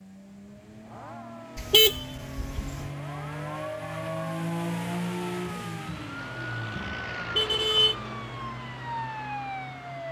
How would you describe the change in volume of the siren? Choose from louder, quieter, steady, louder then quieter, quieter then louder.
louder.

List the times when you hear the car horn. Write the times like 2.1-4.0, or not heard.
1.6-2.9, 7.3-8.0.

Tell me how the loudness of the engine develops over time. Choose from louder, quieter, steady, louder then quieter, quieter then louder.
louder then quieter.